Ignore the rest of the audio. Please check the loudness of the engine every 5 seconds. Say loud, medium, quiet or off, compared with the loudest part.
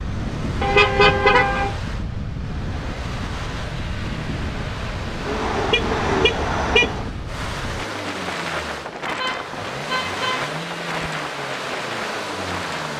medium, loud, loud.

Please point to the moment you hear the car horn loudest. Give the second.
1 s.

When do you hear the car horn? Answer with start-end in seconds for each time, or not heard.
0.6-1.8, 5.2-7.1, 9.1-11.1.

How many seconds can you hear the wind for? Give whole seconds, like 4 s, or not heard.
13 s.